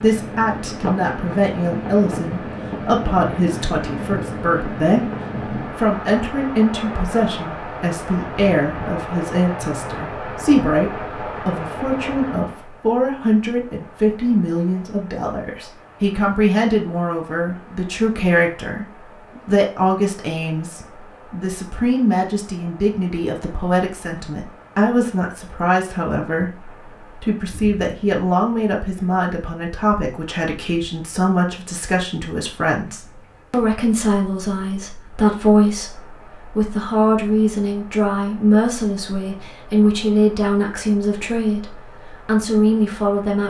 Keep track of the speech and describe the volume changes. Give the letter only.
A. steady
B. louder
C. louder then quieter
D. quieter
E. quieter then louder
A.